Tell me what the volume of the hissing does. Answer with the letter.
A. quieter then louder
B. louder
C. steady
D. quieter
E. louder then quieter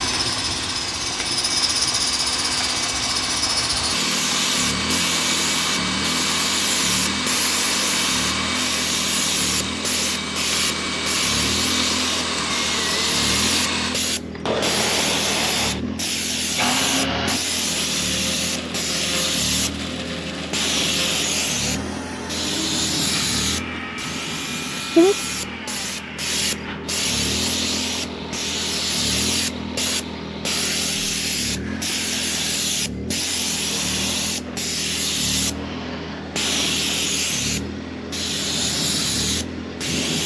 C.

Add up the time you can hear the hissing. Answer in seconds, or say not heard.
40 s.